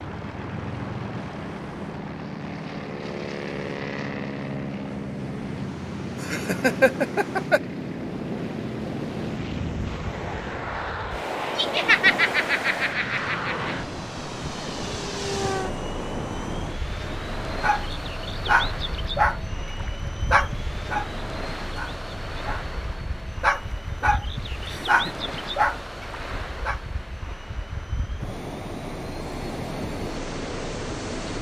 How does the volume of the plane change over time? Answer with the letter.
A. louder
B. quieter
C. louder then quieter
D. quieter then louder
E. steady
B.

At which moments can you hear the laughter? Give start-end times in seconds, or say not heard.
6.2-7.6, 11.6-13.7, 24.6-25.2.